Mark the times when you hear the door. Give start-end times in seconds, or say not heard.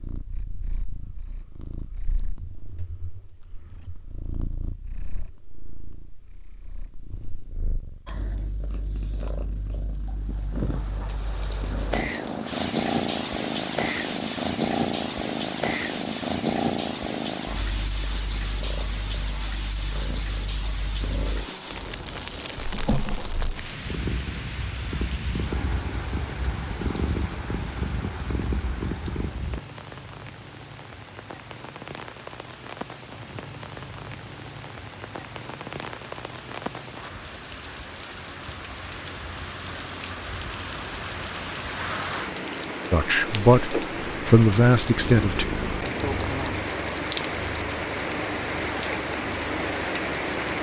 not heard.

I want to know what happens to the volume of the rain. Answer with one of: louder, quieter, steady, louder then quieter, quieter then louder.
quieter then louder.